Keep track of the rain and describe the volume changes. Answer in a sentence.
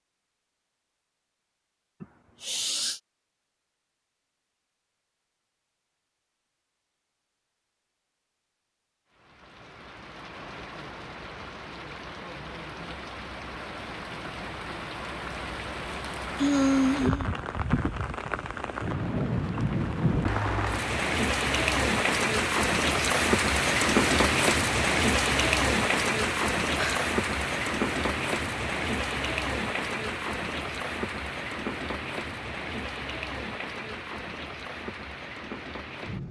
The volume of the rain goes up, then down.